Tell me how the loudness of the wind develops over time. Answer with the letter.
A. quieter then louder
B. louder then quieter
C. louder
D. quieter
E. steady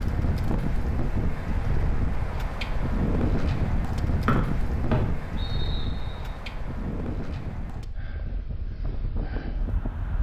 D.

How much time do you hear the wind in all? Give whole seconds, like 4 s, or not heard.
10 s.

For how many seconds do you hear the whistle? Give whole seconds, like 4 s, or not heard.
2 s.